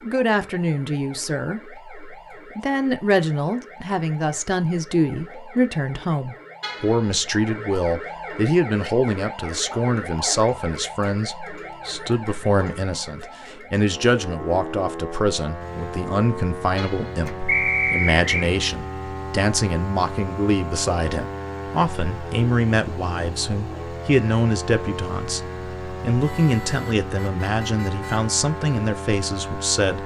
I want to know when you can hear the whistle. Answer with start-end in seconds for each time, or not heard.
17.4-18.5.